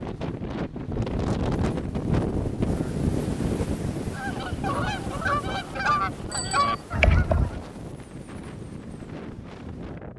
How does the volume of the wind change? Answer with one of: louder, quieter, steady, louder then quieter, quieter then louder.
quieter.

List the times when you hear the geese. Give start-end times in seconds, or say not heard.
4.1-7.6.